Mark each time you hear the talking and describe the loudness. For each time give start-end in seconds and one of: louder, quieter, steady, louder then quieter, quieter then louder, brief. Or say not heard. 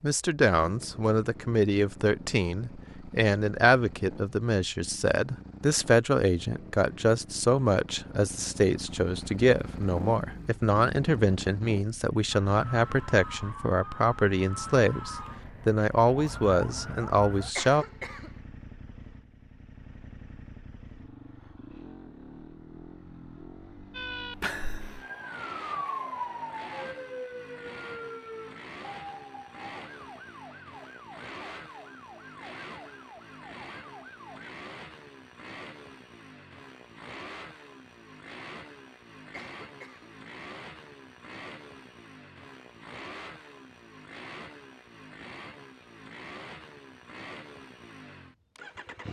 0.0-17.9 steady.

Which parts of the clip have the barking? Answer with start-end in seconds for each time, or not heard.
not heard.